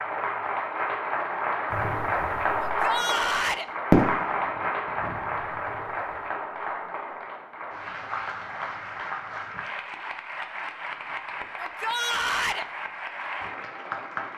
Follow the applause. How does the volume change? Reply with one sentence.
The loudness of the applause goes down.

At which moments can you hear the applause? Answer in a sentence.
The applause can be heard from 0.0 to 14.3 s.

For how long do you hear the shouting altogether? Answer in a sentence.
The shouting can be heard for 2 seconds in total.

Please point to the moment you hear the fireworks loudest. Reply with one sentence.
The volume of the fireworks peaks at 4 seconds.